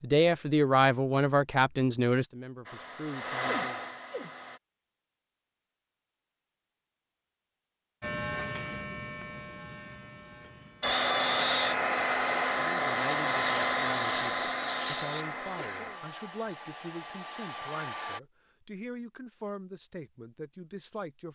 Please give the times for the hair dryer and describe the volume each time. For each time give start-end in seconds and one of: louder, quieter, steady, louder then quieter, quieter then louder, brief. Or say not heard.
2.6-4.6 brief
10.8-18.2 quieter.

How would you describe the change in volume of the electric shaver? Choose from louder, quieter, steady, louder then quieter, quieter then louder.
quieter then louder.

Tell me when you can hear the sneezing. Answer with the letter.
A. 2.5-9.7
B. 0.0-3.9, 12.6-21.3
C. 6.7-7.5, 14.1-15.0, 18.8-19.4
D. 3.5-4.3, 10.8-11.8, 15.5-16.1
D.